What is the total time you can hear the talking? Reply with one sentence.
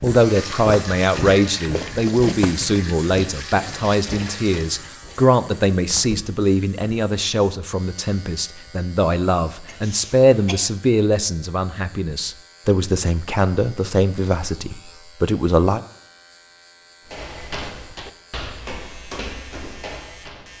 The talking can be heard for 16 seconds in total.